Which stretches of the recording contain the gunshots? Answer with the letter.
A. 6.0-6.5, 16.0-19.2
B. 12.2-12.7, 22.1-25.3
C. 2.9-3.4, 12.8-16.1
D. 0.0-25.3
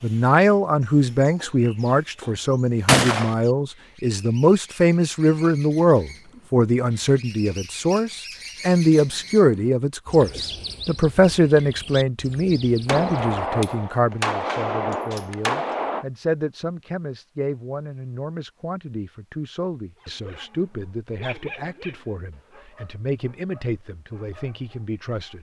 C.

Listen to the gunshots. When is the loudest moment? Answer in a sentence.
The volume of the gunshots peaks at 3 seconds.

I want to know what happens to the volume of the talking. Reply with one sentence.
The loudness of the talking goes down.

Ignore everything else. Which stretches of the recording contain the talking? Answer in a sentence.
The talking can be heard from 0.0 to 25.3 s.